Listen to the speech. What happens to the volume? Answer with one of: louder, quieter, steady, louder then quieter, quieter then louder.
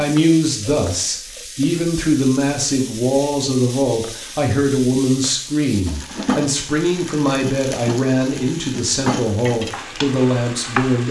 steady.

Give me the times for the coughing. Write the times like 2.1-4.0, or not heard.
not heard.